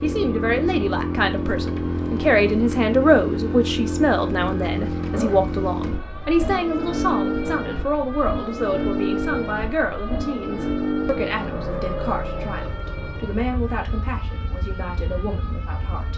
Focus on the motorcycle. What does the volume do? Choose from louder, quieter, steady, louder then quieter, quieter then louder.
quieter.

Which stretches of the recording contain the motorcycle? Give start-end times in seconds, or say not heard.
0.0-16.1.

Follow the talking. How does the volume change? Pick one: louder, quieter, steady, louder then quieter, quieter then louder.
quieter.